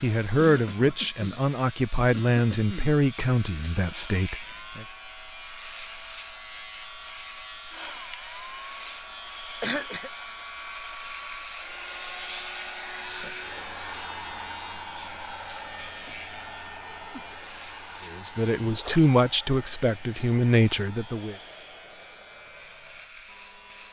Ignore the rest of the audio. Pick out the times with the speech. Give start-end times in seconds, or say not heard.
0.0-4.8, 18.1-21.4.